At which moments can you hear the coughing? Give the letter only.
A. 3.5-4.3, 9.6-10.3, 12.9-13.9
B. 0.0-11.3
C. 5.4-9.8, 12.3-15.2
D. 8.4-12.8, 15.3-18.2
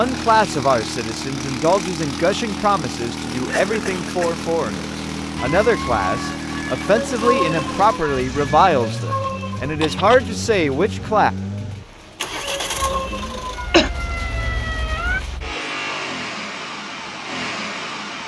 A.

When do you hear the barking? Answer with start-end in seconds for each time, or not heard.
not heard.